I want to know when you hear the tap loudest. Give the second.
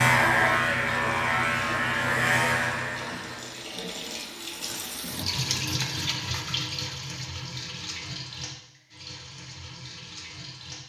6 s.